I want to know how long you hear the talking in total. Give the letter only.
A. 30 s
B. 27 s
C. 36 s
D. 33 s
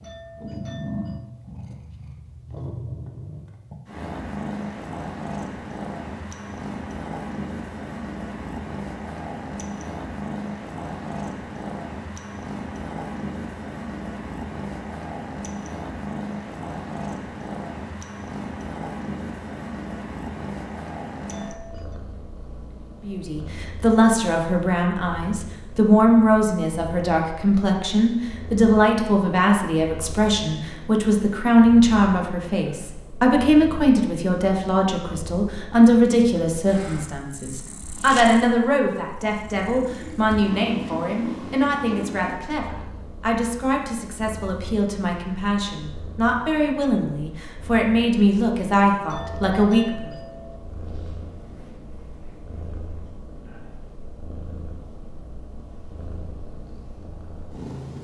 B.